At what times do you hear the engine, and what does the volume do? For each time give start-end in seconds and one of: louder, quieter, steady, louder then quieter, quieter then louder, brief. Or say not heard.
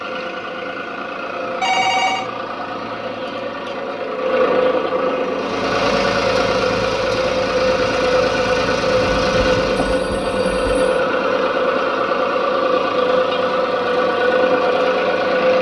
0.0-15.5 louder.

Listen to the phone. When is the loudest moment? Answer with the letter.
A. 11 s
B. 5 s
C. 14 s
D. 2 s
D.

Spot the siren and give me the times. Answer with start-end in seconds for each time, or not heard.
not heard.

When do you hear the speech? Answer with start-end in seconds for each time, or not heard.
not heard.